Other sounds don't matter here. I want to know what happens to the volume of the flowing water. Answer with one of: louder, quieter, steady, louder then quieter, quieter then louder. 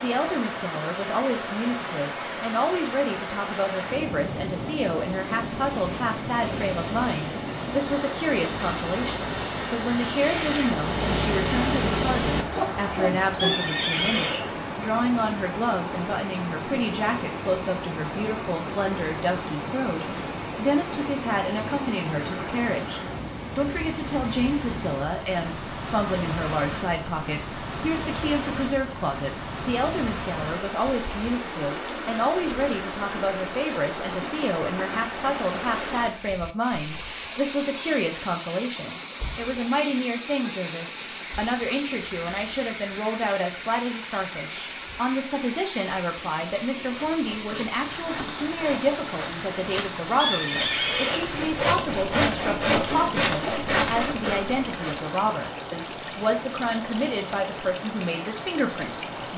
steady.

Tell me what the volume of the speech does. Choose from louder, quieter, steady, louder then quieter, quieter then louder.
steady.